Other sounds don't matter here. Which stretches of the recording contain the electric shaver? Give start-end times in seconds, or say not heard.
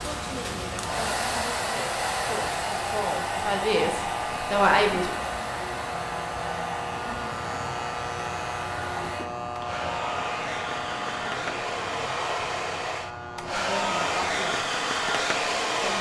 0.0-15.9.